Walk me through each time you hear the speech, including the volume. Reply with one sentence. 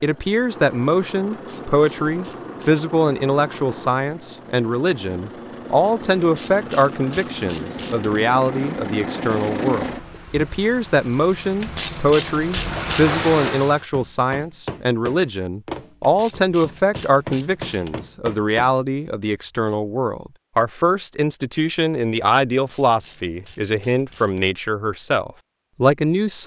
You can hear the speech from 0.0 to 26.4 s, at a steady volume.